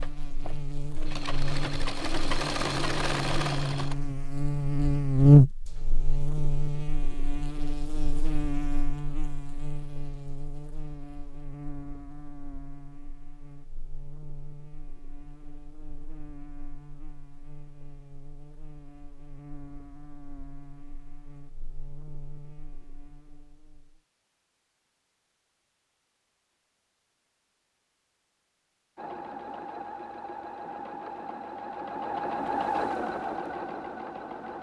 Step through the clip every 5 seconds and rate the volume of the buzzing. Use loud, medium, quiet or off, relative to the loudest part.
medium, loud, quiet, quiet, quiet, off, off.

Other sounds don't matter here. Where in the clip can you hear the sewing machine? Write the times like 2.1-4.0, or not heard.
0.0-4.2, 28.9-34.5.